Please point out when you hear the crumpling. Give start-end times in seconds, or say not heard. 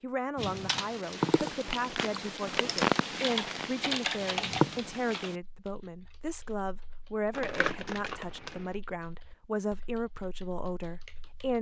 1.8-3.7, 7.3-8.6.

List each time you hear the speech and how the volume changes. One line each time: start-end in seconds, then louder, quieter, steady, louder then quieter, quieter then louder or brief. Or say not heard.
0.0-11.5 steady.